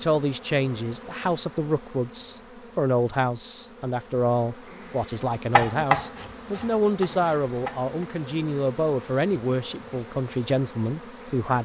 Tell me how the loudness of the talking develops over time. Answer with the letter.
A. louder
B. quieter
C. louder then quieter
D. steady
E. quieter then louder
D.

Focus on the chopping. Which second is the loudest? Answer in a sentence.
The volume of the chopping peaks at 6 seconds.